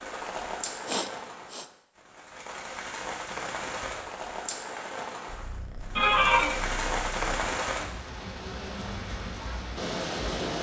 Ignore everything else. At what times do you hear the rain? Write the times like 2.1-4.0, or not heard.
0.0-10.5.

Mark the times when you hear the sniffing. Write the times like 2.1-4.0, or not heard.
0.8-1.6, 6.0-6.5.